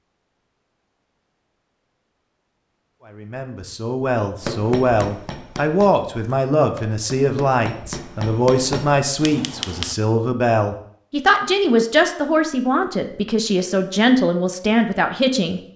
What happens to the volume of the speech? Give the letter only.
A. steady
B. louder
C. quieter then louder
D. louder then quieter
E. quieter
A.